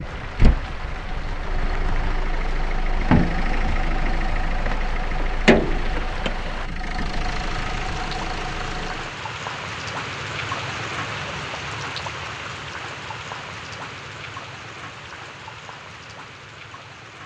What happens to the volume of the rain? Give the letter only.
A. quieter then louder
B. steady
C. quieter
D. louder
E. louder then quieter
E.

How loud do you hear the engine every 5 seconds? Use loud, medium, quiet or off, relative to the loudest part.
loud, loud, off, off.